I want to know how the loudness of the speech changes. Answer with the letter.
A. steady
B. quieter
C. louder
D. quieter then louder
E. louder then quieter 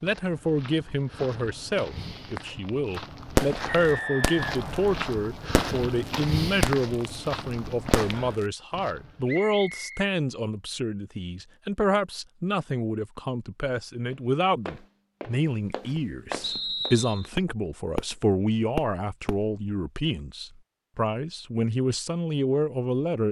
A.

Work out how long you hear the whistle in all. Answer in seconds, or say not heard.
3 s.